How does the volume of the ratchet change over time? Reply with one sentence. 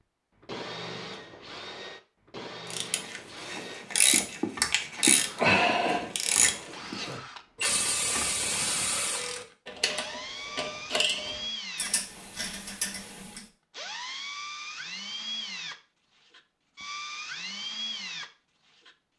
The volume of the ratchet goes down.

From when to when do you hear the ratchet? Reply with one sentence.
The ratchet can be heard from 2.7 to 13.4 s.